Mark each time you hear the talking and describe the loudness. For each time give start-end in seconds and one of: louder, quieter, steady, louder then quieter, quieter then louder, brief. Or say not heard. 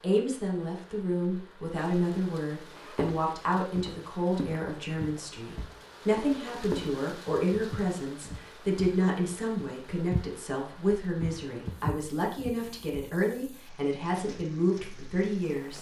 0.0-15.7 steady.